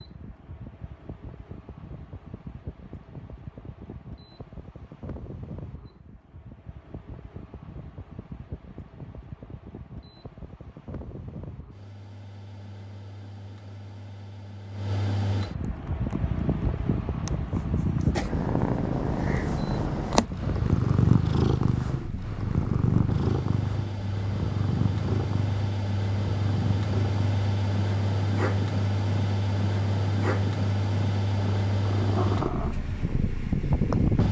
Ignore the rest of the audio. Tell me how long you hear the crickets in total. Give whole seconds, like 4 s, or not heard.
not heard.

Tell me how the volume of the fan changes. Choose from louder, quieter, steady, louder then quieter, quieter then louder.
louder.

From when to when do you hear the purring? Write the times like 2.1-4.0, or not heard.
15.6-34.1.